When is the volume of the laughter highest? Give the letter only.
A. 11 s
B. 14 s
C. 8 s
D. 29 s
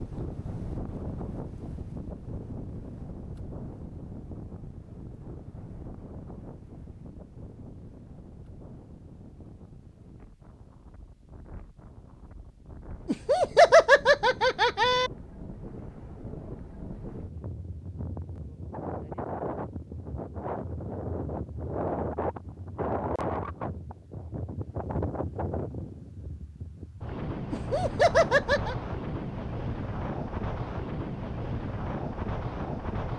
B.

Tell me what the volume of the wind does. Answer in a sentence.
The volume of the wind goes down, then up.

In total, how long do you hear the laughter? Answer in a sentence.
You can hear the laughter for 3 seconds altogether.